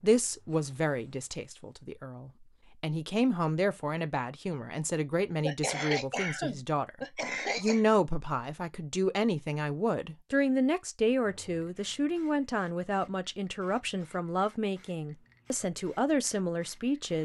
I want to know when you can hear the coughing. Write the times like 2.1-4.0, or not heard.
5.4-7.8.